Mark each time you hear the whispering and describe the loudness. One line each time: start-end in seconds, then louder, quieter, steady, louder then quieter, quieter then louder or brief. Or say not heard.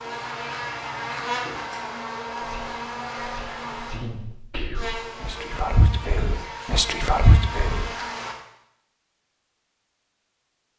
2.4-7.9 louder.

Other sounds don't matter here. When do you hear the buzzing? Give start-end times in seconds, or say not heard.
0.0-8.3.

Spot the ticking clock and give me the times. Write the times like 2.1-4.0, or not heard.
not heard.